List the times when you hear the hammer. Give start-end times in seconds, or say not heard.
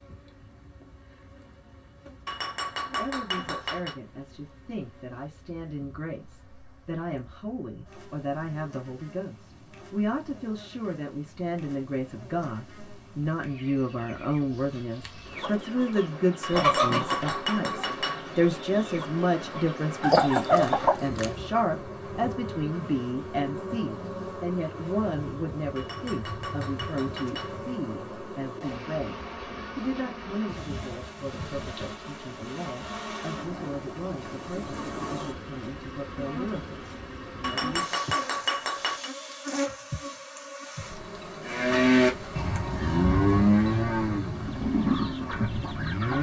2.2-4.0, 16.4-18.2, 25.8-27.6, 37.4-39.1.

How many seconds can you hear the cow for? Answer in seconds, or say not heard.
5 s.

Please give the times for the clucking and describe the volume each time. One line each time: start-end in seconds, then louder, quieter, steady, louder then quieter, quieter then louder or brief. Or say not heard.
15.3-21.2 quieter then louder
44.4-46.1 brief.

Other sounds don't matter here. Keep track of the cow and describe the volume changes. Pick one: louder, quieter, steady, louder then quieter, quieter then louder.
quieter.